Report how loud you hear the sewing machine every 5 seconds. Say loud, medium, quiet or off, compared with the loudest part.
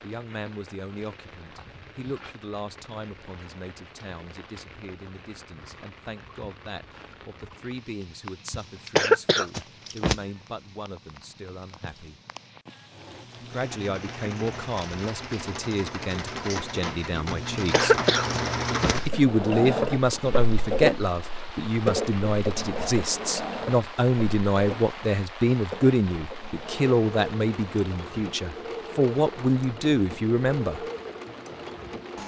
off, off, medium, loud, loud, medium, medium.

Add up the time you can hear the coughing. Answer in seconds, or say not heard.
3 s.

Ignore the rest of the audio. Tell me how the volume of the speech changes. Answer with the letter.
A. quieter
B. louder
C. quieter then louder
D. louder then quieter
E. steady
B.